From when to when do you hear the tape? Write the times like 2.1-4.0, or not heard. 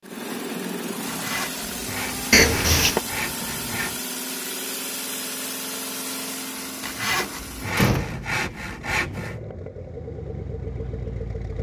not heard.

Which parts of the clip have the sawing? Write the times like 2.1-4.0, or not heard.
1.1-4.0, 6.8-9.4.